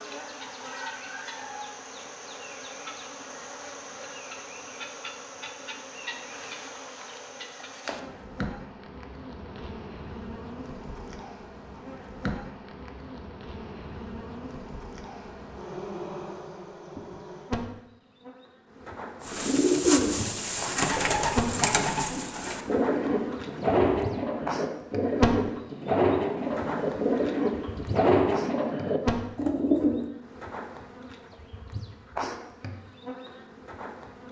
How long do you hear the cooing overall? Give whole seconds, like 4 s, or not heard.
11 s.